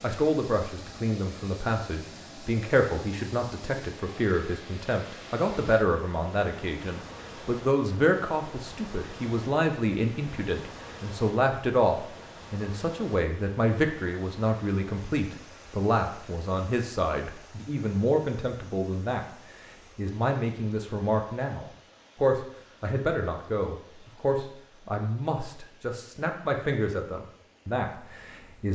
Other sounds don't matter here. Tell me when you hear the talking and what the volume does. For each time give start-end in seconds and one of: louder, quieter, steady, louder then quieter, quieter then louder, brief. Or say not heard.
0.0-28.7 steady.